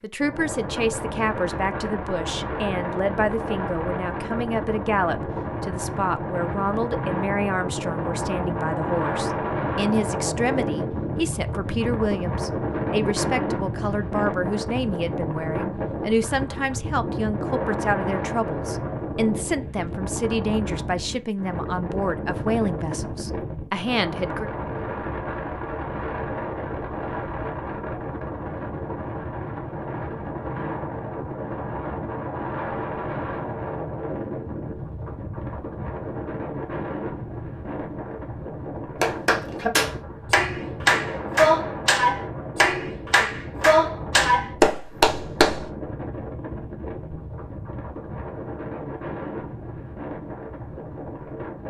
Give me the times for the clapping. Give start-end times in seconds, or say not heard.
39.0-45.6.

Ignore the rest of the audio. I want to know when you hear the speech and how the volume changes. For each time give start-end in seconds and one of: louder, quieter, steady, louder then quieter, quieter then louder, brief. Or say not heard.
0.0-24.5 steady.